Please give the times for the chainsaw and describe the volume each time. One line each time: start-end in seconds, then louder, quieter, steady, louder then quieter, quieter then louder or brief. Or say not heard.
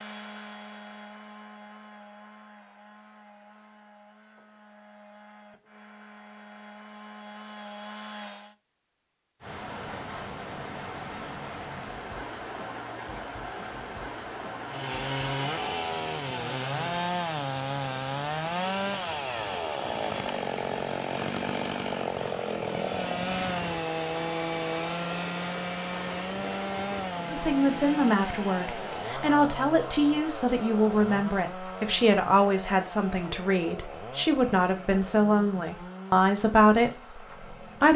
0.0-8.6 quieter then louder
14.7-37.9 quieter.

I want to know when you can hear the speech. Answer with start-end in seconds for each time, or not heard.
27.3-37.9.